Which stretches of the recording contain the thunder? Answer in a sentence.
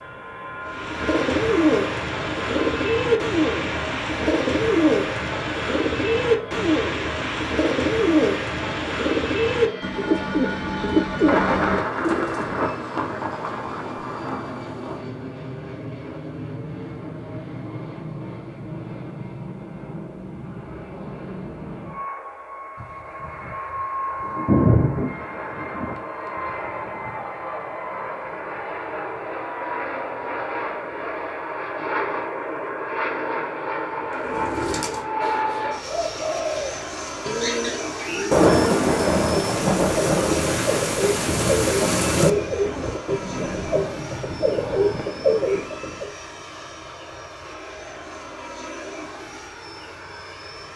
You can hear the thunder from 11.2 to 15.0 s, from 22.8 to 27.2 s and from 38.3 to 42.3 s.